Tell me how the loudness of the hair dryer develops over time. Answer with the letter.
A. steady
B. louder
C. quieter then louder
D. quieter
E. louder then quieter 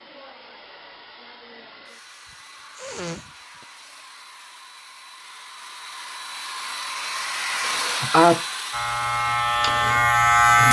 B.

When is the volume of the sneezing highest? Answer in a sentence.
The loudest moment of the sneezing is at 8 seconds.